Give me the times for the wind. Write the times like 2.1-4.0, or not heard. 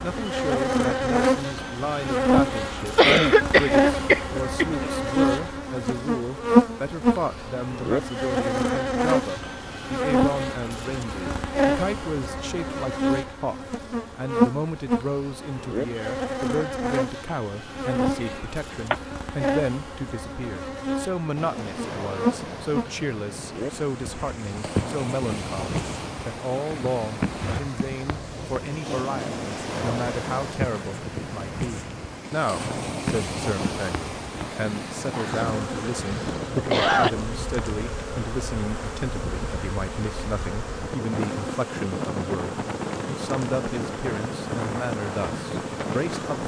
21.4-46.4.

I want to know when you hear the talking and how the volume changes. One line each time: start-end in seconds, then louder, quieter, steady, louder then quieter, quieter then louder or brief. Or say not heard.
0.0-46.4 steady.